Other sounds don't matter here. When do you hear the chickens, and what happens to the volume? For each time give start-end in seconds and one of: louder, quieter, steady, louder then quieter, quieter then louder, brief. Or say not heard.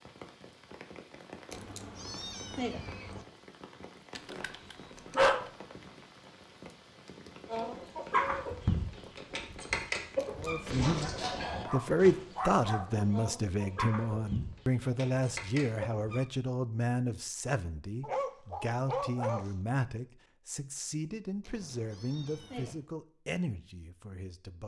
7.5-16.2 quieter.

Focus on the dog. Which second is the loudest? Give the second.
5 s.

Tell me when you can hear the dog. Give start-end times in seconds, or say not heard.
4.2-5.5, 10.8-13.1, 18.0-19.5.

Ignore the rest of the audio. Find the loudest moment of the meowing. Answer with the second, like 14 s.
3 s.